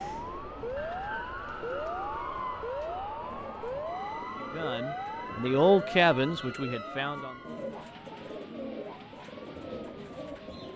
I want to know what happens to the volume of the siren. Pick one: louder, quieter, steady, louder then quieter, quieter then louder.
quieter.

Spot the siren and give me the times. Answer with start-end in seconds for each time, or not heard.
0.0-10.7.